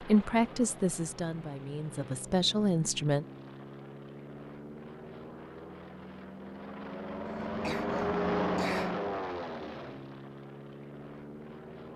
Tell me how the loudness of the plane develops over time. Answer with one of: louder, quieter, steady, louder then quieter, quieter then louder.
louder then quieter.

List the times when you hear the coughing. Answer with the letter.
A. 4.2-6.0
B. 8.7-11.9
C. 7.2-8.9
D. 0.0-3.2
C.